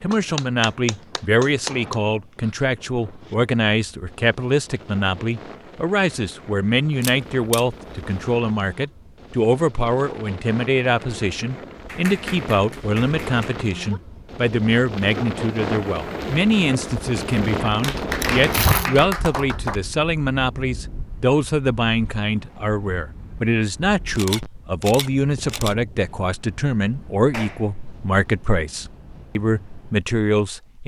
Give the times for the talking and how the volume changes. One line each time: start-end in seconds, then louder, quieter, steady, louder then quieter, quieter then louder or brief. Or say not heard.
0.0-30.8 steady.